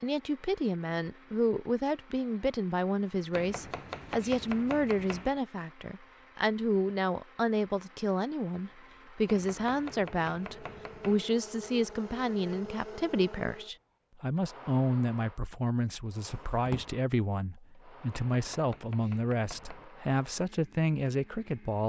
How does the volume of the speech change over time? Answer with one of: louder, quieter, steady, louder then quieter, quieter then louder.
steady.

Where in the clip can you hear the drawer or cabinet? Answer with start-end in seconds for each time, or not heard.
16.2-16.9.